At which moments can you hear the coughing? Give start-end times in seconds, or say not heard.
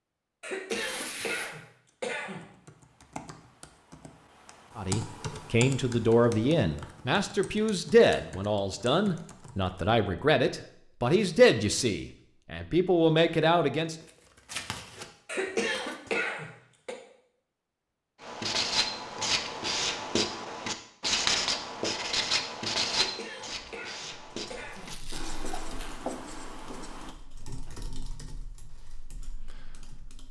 0.4-2.4, 15.2-16.9, 23.0-24.9.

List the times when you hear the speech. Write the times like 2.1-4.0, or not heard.
4.8-13.9.